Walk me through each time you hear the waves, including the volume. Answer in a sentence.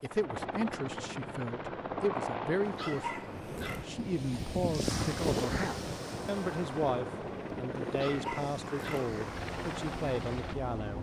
You can hear the waves from 3.2 to 10.9 s, getting quieter.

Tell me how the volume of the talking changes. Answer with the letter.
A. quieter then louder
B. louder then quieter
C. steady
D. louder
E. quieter
C.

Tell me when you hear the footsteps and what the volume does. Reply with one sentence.
The footsteps can't be heard in this clip.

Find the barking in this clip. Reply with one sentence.
You can hear the barking from 2.6 to 3.9 s and from 7.8 to 9.1 s.